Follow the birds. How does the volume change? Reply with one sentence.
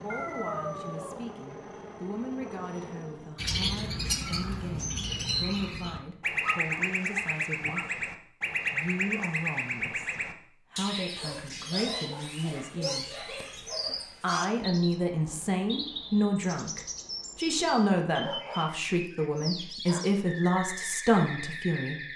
The loudness of the birds goes down.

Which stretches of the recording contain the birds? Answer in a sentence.
The birds can be heard from 3.4 to 22.1 s.